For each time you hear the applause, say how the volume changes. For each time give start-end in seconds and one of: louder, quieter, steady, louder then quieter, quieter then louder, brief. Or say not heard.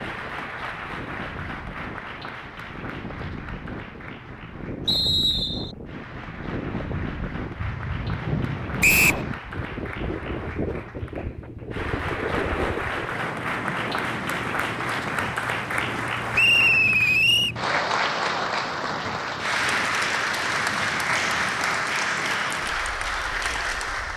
0.0-24.1 louder.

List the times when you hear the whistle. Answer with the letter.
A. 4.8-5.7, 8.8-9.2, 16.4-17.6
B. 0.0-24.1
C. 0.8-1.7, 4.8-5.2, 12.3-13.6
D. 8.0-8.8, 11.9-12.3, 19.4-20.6
A.